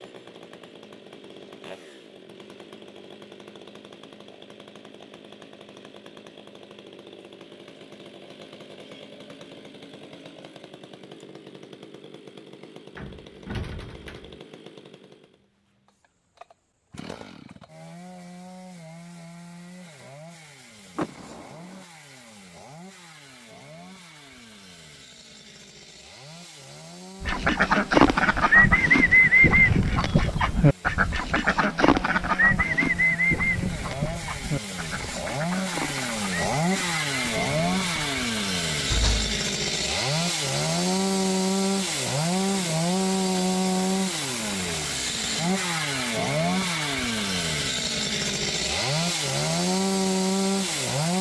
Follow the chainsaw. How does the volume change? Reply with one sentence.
The loudness of the chainsaw goes up.